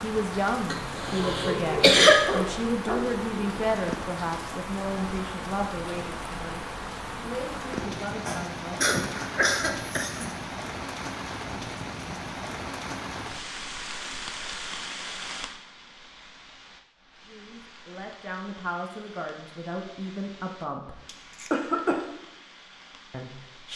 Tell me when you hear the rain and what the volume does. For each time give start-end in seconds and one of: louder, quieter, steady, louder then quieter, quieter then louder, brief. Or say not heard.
0.0-23.7 quieter.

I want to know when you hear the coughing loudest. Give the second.
2 s.